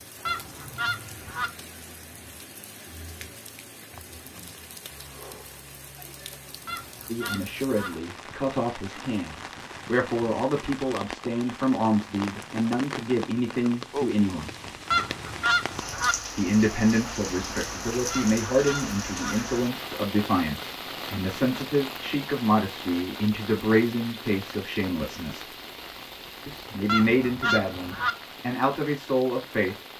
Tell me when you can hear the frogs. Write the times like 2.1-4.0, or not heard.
not heard.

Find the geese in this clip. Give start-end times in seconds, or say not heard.
0.2-1.5, 6.7-7.9, 14.9-16.1, 18.1-19.4, 26.9-28.1.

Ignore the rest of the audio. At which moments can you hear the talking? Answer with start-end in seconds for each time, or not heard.
7.0-14.5, 16.4-25.5, 26.4-29.8.